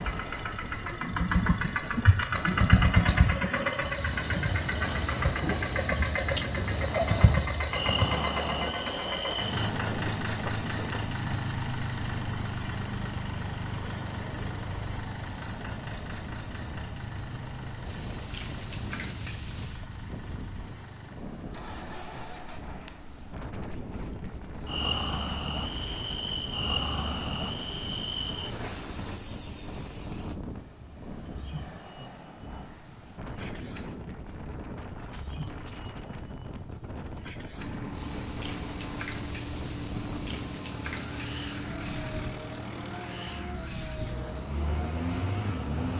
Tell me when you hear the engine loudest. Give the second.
3 s.